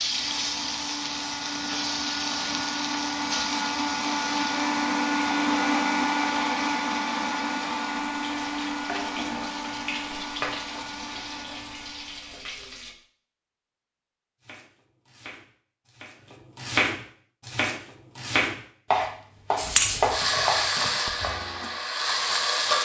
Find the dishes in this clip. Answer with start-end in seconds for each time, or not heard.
not heard.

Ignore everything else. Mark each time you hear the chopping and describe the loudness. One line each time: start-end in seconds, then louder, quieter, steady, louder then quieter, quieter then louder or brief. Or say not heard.
14.4-21.7 louder.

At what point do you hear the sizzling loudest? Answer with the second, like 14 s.
20 s.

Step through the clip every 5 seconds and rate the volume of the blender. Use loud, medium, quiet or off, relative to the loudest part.
loud, loud, quiet, off, off.